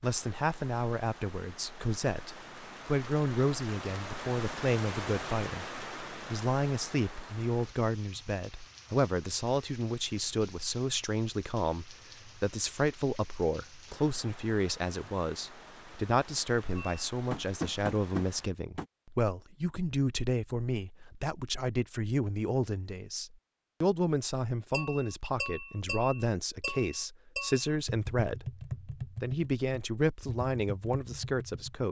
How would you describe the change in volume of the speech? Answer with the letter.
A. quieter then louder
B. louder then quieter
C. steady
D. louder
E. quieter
C.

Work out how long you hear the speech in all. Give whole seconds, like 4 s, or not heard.
32 s.